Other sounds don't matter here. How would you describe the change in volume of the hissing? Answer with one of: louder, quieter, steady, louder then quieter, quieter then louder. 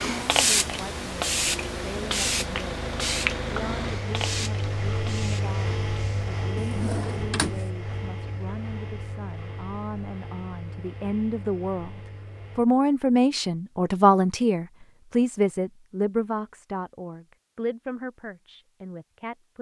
quieter.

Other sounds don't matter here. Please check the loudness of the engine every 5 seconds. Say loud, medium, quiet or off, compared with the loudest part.
loud, loud, medium, off.